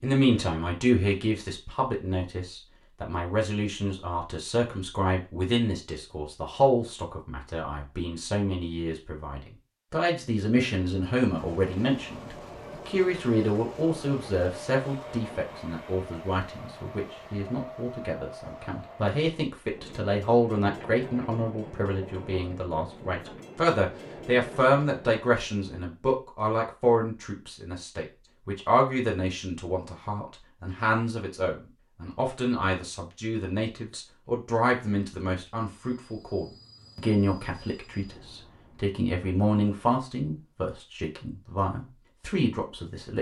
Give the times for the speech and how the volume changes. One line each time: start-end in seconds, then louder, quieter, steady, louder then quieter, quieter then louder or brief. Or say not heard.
0.0-43.1 steady.